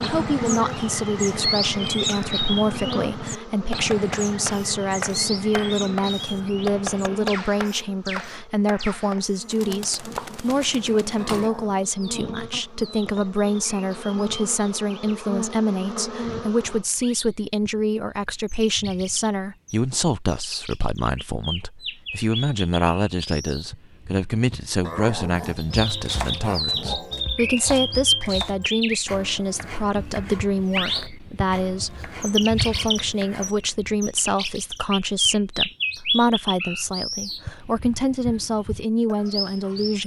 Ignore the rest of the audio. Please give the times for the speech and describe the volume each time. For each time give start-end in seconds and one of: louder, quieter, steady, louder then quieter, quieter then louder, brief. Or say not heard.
0.0-40.0 steady.